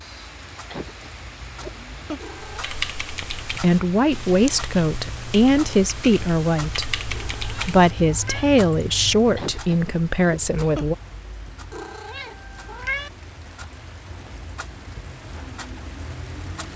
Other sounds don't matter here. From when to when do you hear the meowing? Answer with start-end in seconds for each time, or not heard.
2.1-2.9, 7.1-8.5, 11.7-13.1.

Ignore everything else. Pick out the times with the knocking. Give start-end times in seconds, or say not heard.
not heard.